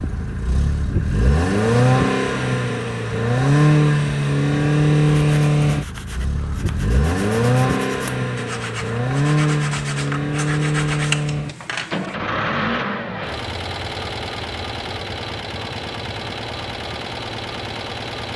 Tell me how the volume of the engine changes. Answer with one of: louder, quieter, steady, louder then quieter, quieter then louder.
quieter.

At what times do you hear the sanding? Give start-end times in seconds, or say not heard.
5.2-12.2.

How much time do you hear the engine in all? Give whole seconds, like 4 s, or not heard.
18 s.